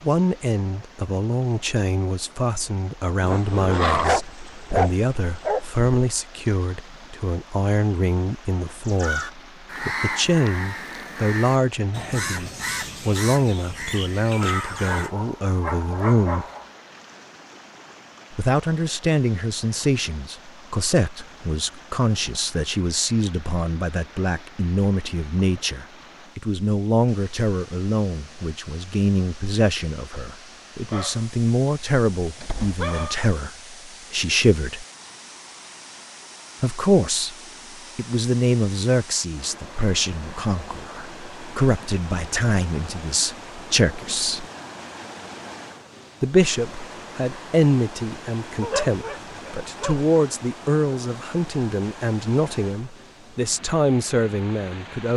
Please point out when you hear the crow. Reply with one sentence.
You can hear the crow from 8.8 to 15.1 s.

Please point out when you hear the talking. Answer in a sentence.
You can hear the talking from 0.0 to 16.4 s, from 18.3 to 34.9 s, from 36.6 to 37.4 s, from 38.0 to 44.5 s and from 46.2 to 55.1 s.